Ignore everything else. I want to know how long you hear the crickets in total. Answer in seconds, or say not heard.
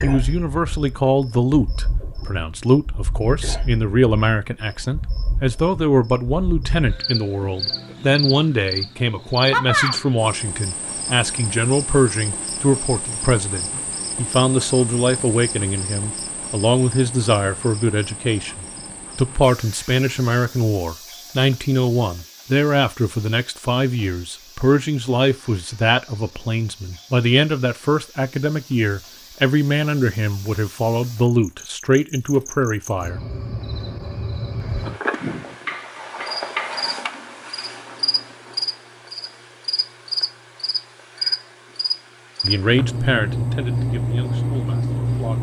45 s.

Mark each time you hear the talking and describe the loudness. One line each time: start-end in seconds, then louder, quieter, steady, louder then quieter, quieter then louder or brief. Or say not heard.
0.0-33.2 steady
42.4-45.3 brief.